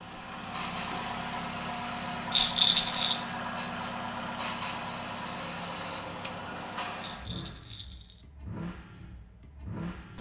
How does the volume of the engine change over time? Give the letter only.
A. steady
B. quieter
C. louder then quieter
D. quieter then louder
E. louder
B.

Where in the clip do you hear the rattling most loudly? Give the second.
3 s.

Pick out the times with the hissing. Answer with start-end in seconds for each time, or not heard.
0.0-7.2.